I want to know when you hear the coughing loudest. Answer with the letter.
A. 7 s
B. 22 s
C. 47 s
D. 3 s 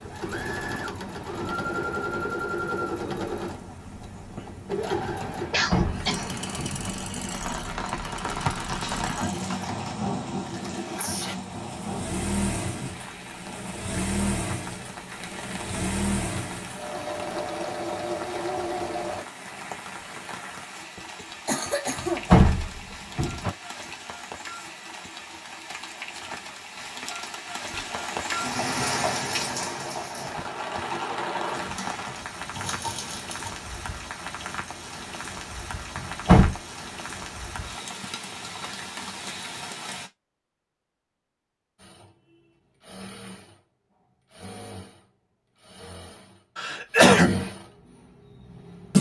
C.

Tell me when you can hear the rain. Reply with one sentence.
You can hear the rain from 0.0 to 40.1 s.